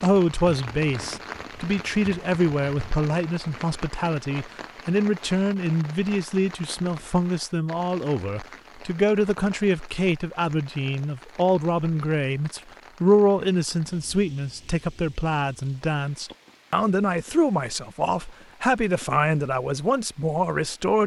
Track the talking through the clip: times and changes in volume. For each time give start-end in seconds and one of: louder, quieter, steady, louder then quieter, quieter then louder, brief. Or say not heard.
0.0-21.0 steady.